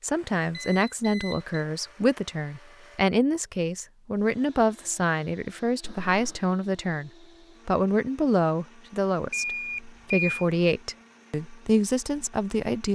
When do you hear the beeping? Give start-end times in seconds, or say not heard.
0.4-1.6, 5.8-6.5, 9.3-10.4.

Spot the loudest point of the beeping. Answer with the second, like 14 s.
10 s.